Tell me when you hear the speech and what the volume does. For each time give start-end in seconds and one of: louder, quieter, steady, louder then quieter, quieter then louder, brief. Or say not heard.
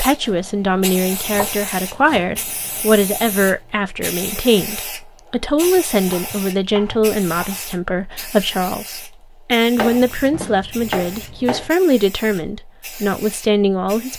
0.0-14.1 steady.